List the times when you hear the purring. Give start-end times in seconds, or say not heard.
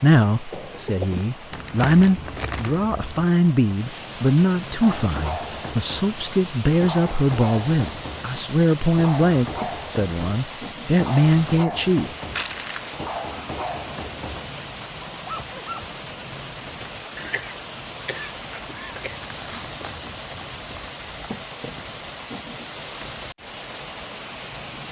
not heard.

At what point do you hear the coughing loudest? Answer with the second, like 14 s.
1 s.